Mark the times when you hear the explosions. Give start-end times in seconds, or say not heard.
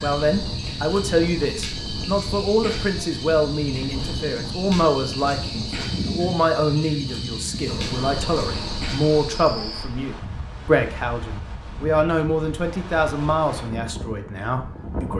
7.7-8.9.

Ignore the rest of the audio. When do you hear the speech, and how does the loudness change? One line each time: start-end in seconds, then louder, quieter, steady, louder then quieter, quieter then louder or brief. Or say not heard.
0.0-15.1 steady.